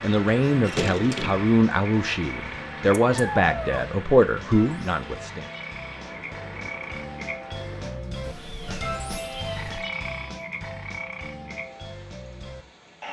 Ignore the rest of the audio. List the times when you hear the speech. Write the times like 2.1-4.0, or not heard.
0.0-5.5.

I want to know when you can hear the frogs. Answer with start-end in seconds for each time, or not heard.
0.0-13.0.